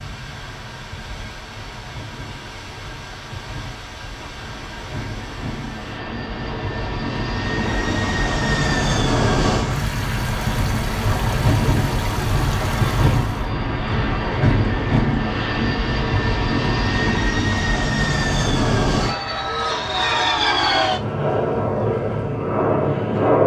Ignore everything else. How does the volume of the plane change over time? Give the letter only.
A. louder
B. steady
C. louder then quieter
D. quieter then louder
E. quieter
A.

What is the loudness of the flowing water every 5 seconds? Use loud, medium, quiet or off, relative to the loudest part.
medium, loud, loud, off, off.